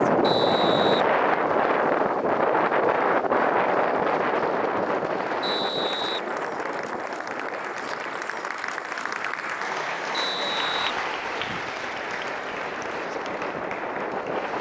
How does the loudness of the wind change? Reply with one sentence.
The volume of the wind goes down, then up.